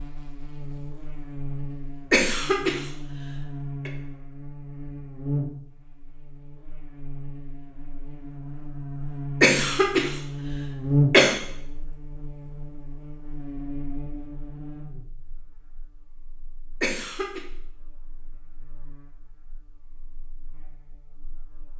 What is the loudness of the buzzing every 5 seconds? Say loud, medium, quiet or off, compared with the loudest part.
medium, medium, loud, quiet, quiet.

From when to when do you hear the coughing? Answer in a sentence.
The coughing can be heard from 2.1 to 3.9 s, from 9.4 to 11.3 s and from 16.8 to 17.4 s.